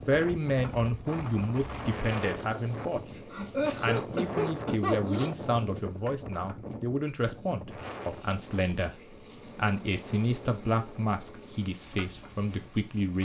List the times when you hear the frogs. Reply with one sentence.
The frogs can't be heard in this clip.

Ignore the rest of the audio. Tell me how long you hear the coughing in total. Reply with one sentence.
The coughing can be heard for 2 seconds in total.